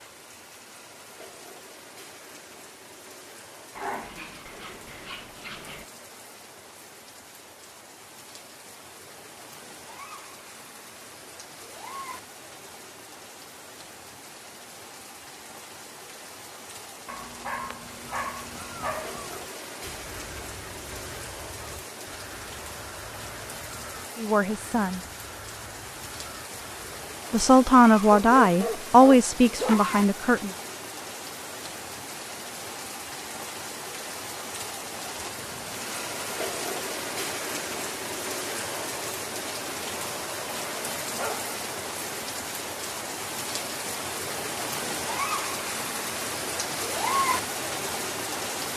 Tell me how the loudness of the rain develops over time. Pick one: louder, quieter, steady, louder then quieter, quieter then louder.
louder.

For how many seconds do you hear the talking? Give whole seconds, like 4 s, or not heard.
4 s.